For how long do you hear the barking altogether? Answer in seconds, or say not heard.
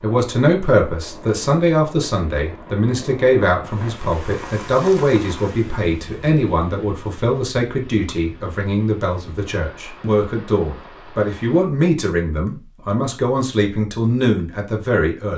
not heard.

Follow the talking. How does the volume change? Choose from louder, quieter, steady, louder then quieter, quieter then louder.
steady.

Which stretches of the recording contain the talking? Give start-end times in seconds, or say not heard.
0.0-15.3.